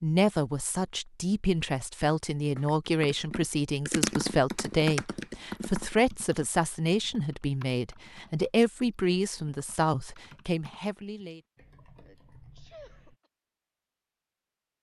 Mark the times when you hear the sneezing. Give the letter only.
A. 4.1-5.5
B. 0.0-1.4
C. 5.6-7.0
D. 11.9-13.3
D.